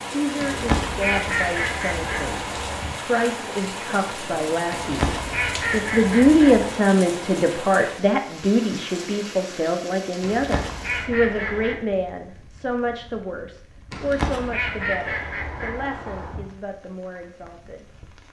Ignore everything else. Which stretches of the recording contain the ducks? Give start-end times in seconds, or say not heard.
0.4-3.0, 4.7-6.8, 10.2-11.8, 13.9-16.4.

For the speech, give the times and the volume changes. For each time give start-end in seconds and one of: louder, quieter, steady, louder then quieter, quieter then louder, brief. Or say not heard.
0.1-17.9 louder then quieter.